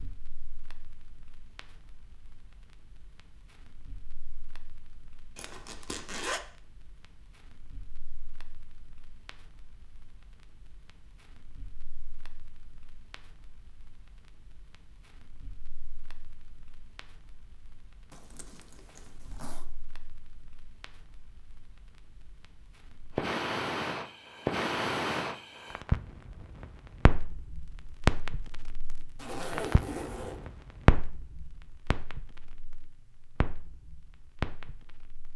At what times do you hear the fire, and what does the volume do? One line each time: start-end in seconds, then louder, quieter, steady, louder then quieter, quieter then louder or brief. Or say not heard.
0.0-35.3 louder.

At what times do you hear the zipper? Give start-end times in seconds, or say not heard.
5.3-6.4, 18.1-19.6, 29.1-30.4.